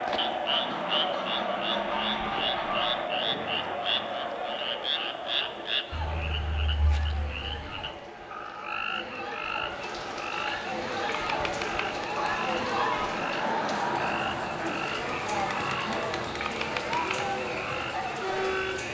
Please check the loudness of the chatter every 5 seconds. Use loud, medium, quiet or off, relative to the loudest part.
loud, medium, loud, loud.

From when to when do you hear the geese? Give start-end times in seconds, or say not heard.
0.5-3.0, 12.2-14.1.